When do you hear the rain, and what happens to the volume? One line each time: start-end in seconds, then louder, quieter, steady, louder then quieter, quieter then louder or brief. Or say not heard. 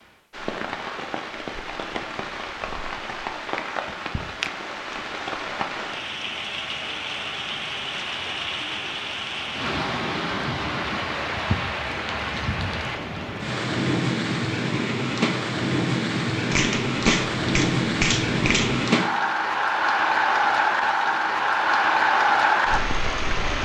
0.0-23.5 louder.